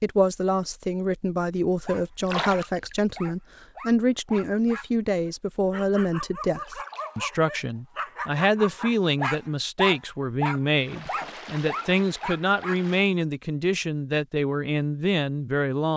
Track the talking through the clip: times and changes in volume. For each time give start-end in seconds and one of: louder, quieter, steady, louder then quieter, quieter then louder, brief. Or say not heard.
0.0-15.9 steady.